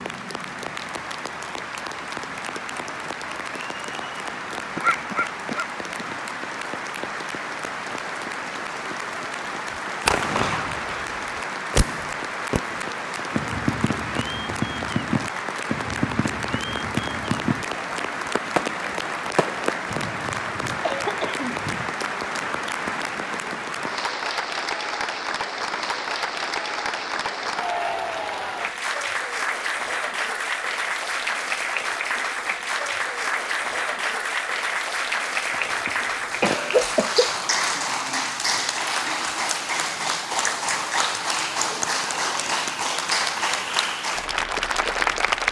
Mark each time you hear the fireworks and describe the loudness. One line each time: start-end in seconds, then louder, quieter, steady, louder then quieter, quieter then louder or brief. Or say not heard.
9.7-19.9 steady.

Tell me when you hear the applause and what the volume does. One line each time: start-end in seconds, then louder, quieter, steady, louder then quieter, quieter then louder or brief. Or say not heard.
0.0-45.4 louder.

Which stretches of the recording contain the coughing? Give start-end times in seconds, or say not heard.
4.8-6.1, 19.9-21.9, 35.5-37.3.